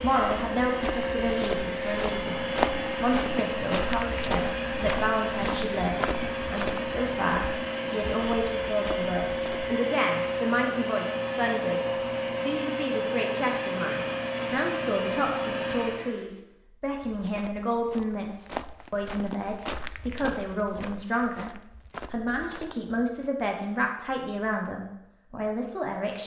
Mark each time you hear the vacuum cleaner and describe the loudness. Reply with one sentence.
The vacuum cleaner can be heard from 0.0 to 16.3 s, at a steady volume.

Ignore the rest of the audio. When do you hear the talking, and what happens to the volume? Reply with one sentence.
You can hear the talking from 0.0 to 21.5 s, at a steady volume; and from 22.1 to 26.2 s, at a steady volume.